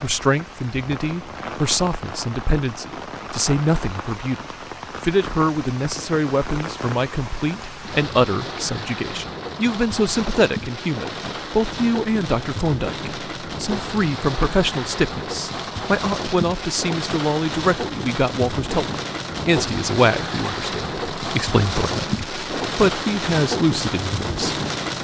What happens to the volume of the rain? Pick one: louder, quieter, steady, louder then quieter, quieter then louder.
louder.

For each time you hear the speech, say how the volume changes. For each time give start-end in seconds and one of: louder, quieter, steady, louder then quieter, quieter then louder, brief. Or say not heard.
0.0-24.9 steady.